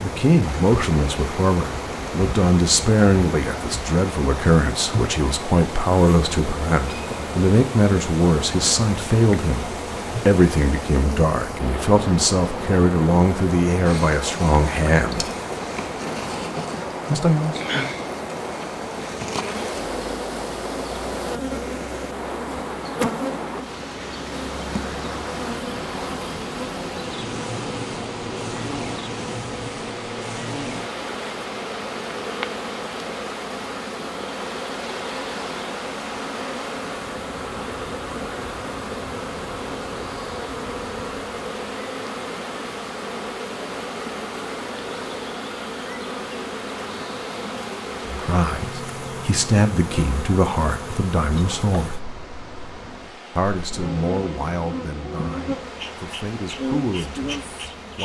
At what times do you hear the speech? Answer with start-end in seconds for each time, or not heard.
0.0-15.2, 17.1-17.6, 48.0-52.0, 53.4-58.0.